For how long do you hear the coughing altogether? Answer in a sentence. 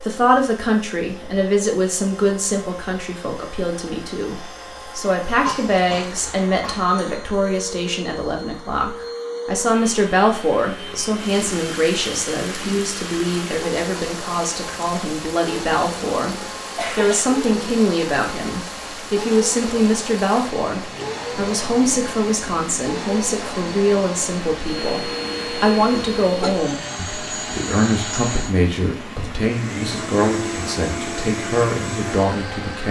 You can hear the coughing for 3 seconds altogether.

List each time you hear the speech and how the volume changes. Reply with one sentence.
You can hear the speech from 0.0 to 32.8 s, at a steady volume.